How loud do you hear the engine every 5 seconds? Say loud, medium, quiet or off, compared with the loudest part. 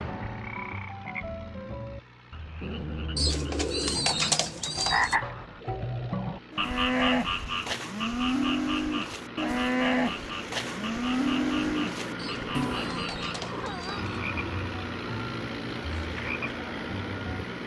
quiet, medium, loud, loud.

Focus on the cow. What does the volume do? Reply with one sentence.
The volume of the cow stays about the same.